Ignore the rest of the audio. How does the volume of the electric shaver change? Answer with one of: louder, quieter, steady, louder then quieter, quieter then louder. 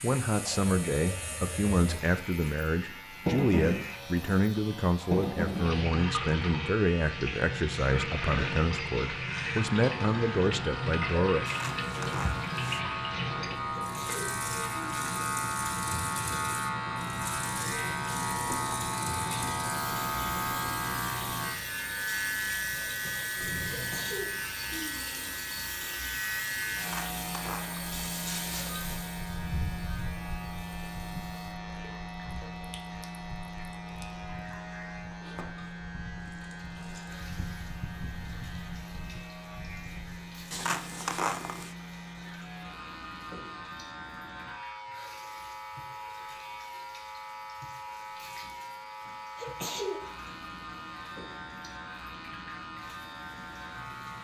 louder then quieter.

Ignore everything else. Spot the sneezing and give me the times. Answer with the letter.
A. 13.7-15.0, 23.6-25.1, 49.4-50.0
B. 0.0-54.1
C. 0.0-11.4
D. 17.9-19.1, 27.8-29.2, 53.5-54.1
A.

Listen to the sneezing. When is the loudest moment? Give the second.
50 s.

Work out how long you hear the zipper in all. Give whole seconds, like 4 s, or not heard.
5 s.